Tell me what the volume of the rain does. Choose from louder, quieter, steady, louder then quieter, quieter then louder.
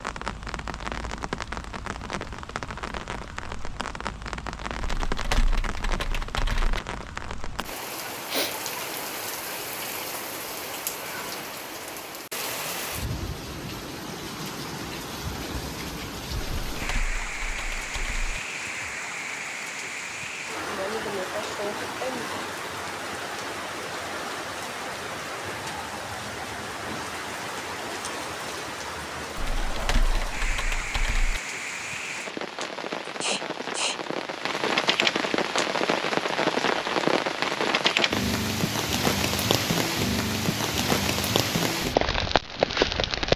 louder.